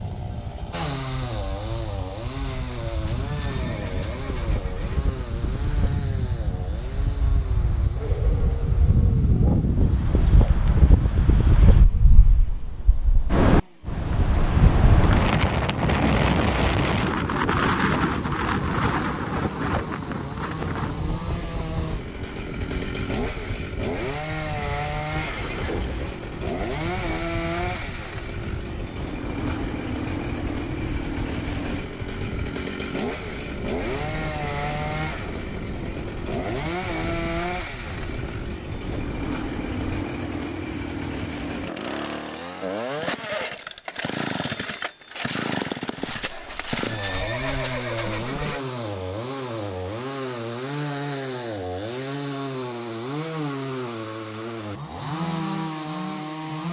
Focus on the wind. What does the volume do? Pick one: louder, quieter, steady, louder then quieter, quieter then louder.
louder then quieter.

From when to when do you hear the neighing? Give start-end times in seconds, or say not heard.
2.4-5.0, 25.1-26.2, 46.0-48.6.